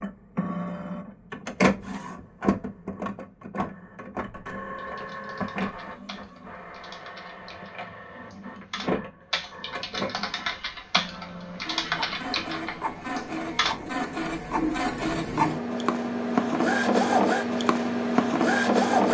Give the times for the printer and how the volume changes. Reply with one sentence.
The printer can be heard from 0.0 to 19.0 s, getting quieter then louder.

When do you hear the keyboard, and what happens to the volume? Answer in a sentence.
You can hear the keyboard from 4.8 to 13.8 s, getting louder.